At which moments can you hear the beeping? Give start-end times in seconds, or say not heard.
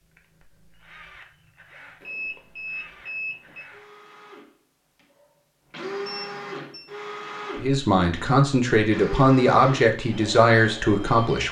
2.0-3.6, 6.0-7.0.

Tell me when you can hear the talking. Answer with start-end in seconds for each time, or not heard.
7.5-11.4.